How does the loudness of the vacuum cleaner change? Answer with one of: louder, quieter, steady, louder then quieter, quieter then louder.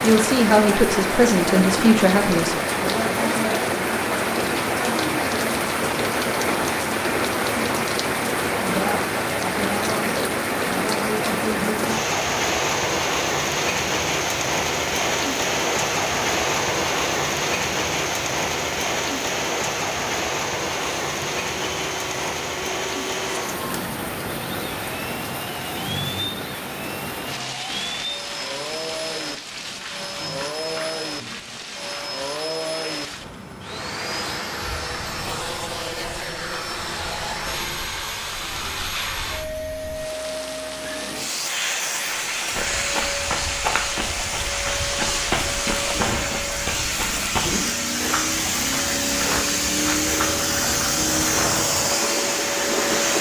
louder.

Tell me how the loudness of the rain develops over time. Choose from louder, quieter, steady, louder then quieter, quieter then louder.
quieter then louder.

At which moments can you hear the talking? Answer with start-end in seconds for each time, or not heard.
0.0-2.5.